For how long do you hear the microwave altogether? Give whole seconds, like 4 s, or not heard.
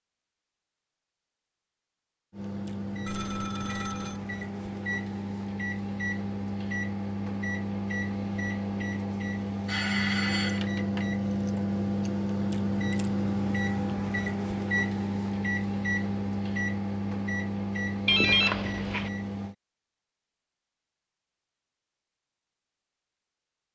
17 s.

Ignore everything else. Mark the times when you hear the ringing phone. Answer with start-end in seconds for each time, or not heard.
3.0-4.2, 9.7-10.7, 18.1-19.1.